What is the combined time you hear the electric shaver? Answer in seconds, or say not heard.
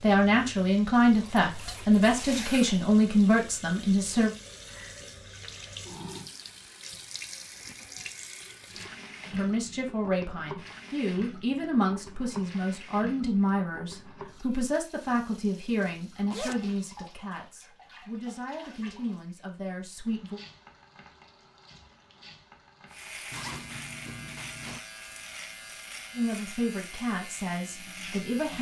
6 s.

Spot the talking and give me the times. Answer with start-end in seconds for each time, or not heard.
0.0-4.3, 9.3-20.4, 26.1-28.5.